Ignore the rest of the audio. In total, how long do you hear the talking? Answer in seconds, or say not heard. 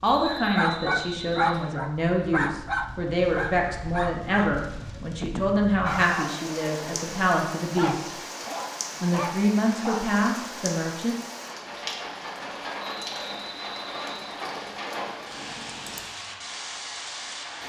10 s.